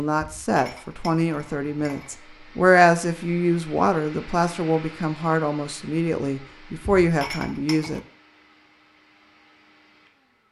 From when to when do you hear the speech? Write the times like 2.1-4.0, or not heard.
0.0-8.0.